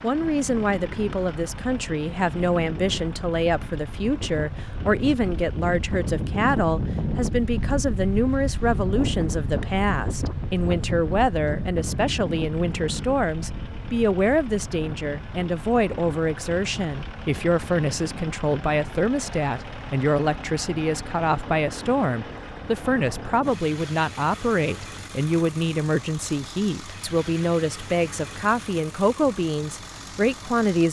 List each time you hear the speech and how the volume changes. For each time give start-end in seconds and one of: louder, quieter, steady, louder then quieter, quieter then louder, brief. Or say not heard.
0.0-30.8 steady.